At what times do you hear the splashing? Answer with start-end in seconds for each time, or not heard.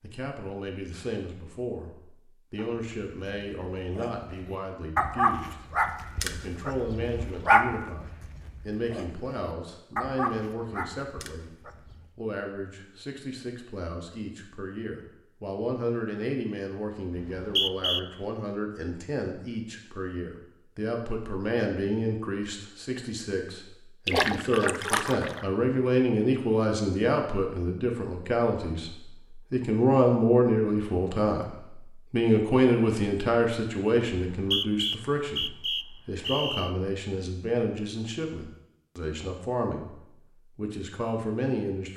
24.1-25.4.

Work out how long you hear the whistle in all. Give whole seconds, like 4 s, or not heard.
3 s.